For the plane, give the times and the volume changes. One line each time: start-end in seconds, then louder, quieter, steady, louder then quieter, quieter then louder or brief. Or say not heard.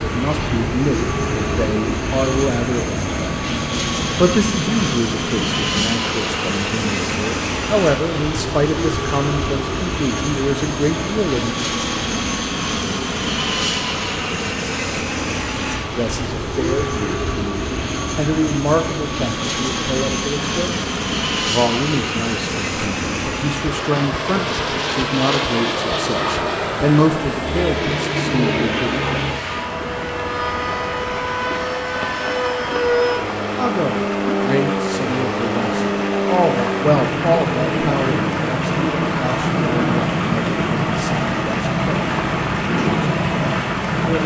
0.0-44.2 steady.